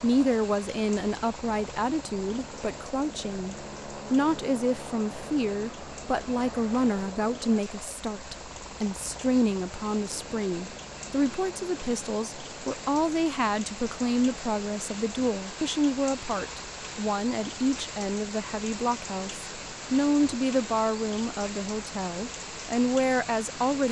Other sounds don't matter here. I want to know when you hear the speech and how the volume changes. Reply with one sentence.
The speech can be heard from 0.0 to 23.8 s, at a steady volume.